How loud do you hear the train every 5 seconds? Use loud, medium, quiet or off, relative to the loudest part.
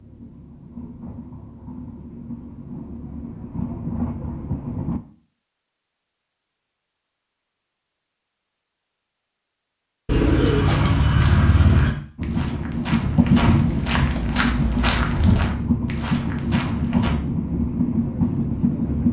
medium, off, loud, loud.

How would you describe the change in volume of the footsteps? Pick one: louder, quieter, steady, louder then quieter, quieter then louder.
louder then quieter.